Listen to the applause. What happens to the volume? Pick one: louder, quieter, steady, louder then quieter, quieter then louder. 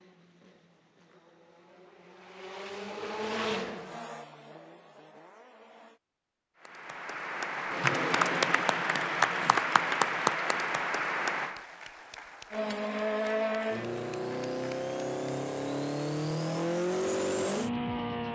quieter.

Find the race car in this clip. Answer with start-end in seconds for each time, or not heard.
0.0-6.0, 12.5-18.3.